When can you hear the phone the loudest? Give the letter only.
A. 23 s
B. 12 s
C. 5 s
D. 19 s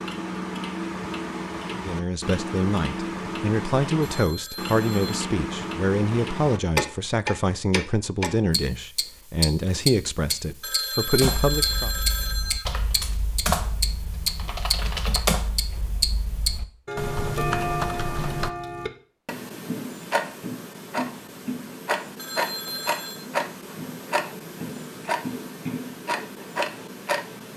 B.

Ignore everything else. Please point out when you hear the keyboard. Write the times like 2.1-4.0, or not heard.
11.2-18.5.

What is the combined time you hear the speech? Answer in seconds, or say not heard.
10 s.